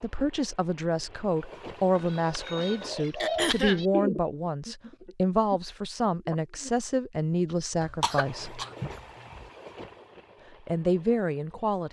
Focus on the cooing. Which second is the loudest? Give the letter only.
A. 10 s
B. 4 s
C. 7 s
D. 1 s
B.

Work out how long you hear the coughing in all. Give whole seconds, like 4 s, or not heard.
2 s.